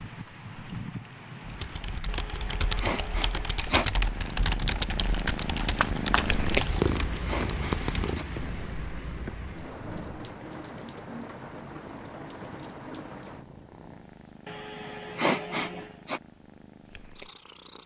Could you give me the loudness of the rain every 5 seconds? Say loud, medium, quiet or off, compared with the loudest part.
loud, loud, loud, off.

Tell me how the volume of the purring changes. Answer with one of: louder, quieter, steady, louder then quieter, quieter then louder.
quieter.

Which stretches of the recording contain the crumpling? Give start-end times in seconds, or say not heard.
5.8-6.5.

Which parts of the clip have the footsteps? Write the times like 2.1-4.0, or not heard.
not heard.